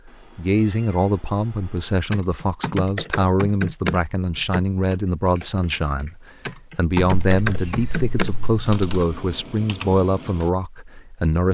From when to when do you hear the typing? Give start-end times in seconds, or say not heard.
2.1-10.5.